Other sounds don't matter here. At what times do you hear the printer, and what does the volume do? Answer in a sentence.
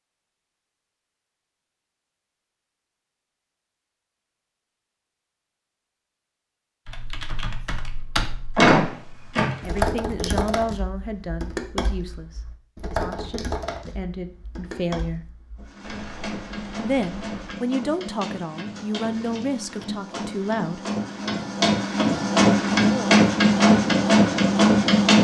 You can hear the printer from 15.6 to 25.2 s, getting louder.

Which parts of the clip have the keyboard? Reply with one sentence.
The keyboard can be heard from 6.8 to 17.6 s.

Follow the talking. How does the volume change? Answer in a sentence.
The loudness of the talking goes down, then up.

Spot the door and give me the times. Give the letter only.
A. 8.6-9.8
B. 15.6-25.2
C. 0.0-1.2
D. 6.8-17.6
A.